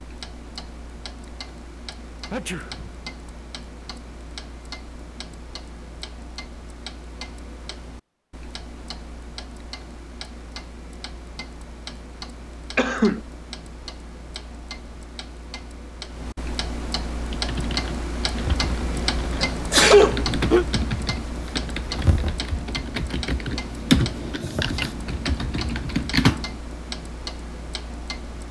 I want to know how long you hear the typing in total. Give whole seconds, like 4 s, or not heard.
9 s.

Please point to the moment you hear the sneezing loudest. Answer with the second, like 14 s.
20 s.